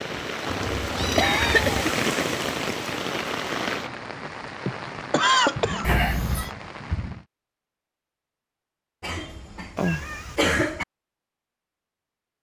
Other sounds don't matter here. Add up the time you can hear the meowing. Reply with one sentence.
You can hear the meowing for 3 seconds altogether.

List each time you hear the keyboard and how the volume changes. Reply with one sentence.
You can't hear the keyboard here.